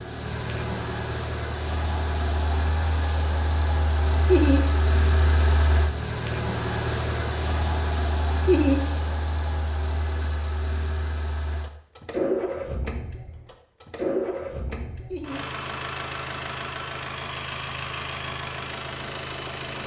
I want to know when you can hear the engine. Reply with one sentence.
You can hear the engine from 0.0 to 19.8 s.